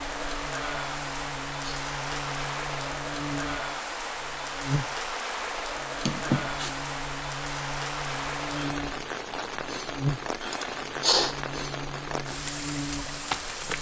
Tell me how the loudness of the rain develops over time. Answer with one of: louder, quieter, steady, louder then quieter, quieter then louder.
steady.